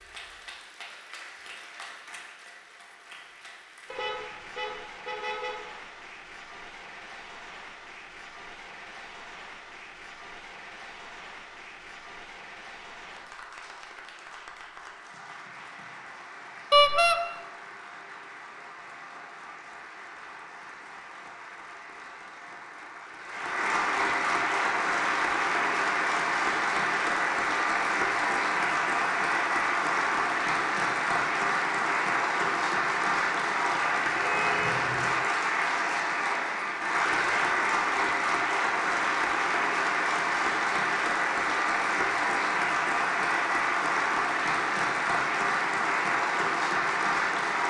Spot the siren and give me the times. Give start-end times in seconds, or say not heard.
not heard.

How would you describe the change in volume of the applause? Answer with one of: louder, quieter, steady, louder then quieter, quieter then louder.
louder.